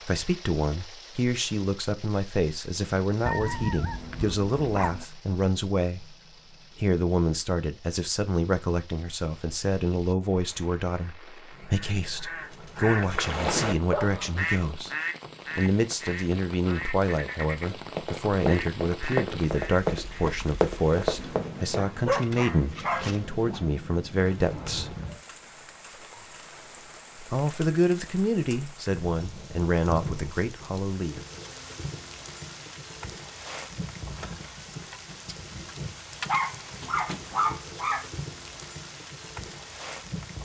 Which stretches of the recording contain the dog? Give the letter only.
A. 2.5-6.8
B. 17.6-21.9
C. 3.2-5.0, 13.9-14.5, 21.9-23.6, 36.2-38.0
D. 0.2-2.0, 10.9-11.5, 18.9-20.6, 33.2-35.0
C.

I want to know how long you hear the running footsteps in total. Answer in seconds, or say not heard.
4 s.